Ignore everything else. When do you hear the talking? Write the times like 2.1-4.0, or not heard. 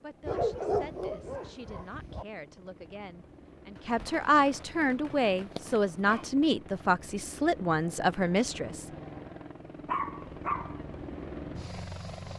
0.0-8.9.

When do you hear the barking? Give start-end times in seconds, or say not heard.
0.2-2.2, 5.1-6.2, 9.8-10.8.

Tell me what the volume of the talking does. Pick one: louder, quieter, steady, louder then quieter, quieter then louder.
louder.